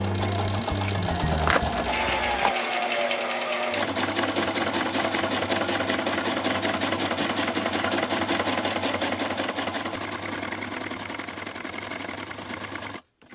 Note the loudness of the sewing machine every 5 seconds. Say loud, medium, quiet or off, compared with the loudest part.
loud, loud, medium.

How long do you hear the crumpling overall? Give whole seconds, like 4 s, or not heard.
2 s.